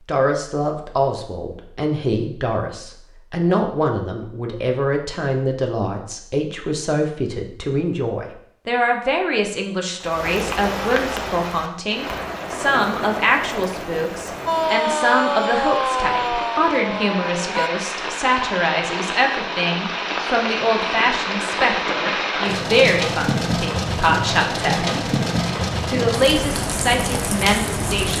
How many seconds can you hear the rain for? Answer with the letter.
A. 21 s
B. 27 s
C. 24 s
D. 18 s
D.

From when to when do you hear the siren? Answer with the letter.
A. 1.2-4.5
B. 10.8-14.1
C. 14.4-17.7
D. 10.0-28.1
C.